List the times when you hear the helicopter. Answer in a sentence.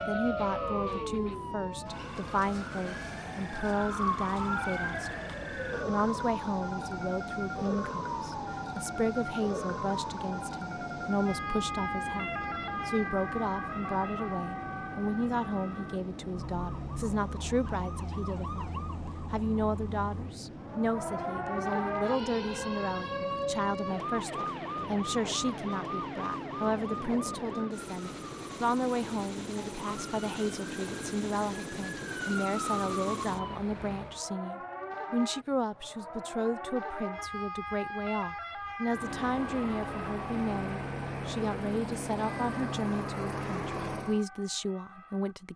The helicopter can be heard from 0.0 to 34.2 s and from 38.8 to 44.2 s.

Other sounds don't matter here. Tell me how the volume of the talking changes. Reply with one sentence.
The volume of the talking stays about the same.